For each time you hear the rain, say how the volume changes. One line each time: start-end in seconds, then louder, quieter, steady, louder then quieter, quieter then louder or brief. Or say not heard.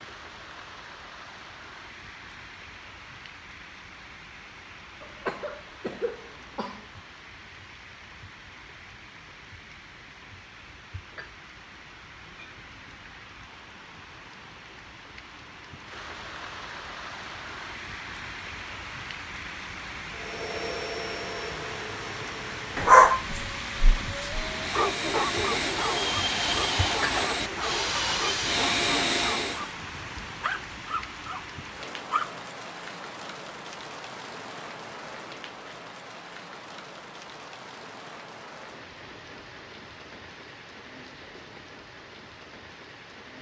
0.0-43.3 louder then quieter.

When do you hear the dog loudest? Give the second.
23 s.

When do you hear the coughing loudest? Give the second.
5 s.